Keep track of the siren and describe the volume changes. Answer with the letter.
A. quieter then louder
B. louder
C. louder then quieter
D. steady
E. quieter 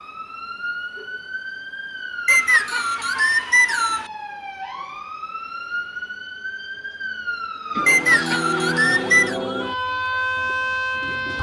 B.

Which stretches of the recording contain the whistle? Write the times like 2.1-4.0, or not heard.
2.2-4.0, 7.8-9.3.